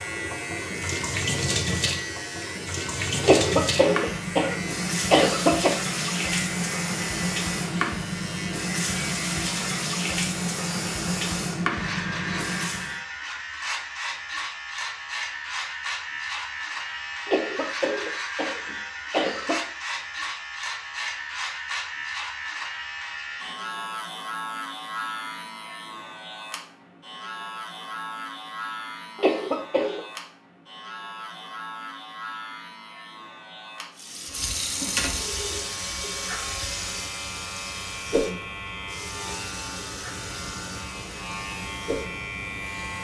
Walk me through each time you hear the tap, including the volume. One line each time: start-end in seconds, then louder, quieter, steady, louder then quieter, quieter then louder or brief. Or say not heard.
0.0-13.0 steady
34.0-42.9 quieter.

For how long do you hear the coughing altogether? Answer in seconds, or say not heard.
6 s.